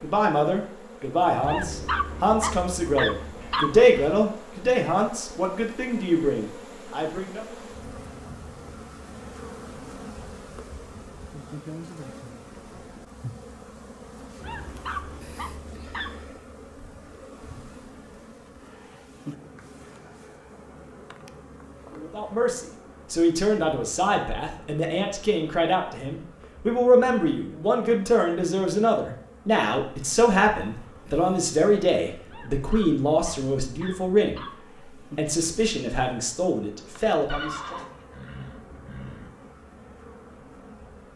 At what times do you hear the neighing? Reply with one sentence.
The neighing can be heard from 37.2 to 39.3 s.